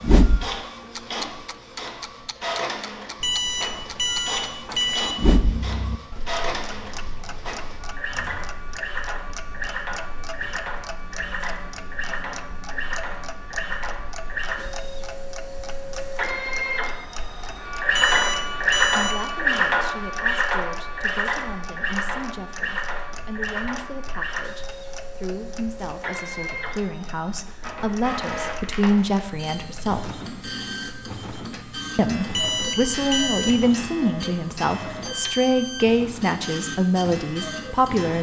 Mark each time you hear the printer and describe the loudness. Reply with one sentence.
The printer can be heard from 0.0 to 38.1 s, getting louder then quieter.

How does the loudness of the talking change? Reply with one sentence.
The loudness of the talking goes up.